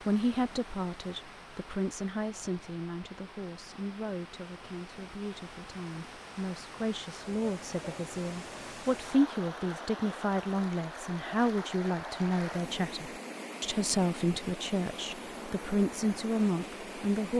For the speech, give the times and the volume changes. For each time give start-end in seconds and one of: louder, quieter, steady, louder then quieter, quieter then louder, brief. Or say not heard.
0.1-17.3 louder.